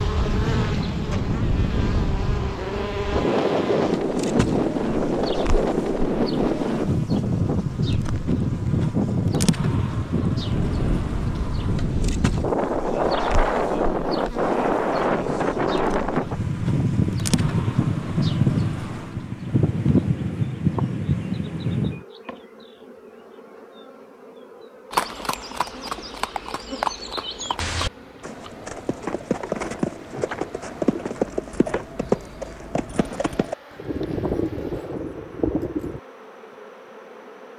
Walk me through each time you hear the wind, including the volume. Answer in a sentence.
You can hear the wind from 0.0 to 22.1 s, at a steady volume.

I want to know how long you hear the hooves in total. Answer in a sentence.
You can hear the hooves for 11 seconds altogether.